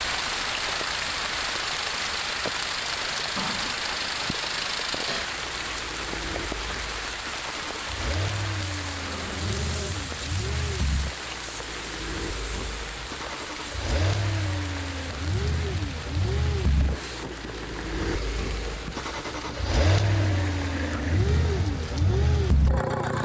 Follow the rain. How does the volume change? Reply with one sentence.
The loudness of the rain goes down.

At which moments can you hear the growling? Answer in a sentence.
You can hear the growling from 3.4 to 3.9 s, from 8.9 to 9.9 s and from 20.1 to 21.3 s.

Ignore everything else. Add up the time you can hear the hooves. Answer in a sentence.
You can't hear the hooves here.